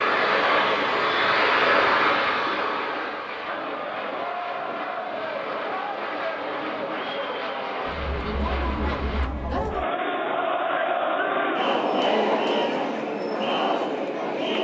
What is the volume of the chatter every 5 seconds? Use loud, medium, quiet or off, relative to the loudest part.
medium, medium, loud.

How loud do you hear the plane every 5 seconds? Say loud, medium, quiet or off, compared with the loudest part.
loud, medium, off.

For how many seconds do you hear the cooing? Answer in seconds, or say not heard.
not heard.